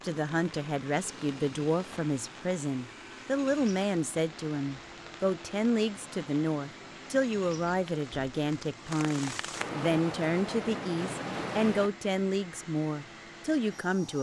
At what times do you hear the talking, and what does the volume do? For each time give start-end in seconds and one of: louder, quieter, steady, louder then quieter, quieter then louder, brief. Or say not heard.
0.0-14.1 steady.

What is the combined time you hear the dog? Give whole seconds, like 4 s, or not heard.
not heard.